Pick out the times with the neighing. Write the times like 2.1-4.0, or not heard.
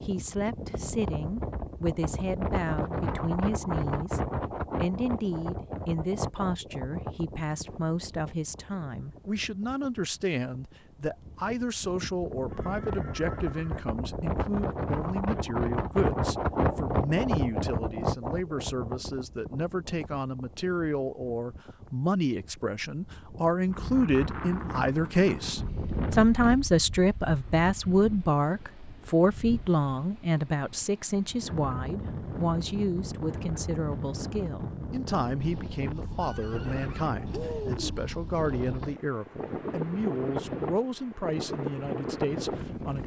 12.4-13.9, 36.1-38.0.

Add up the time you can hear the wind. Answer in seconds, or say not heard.
43 s.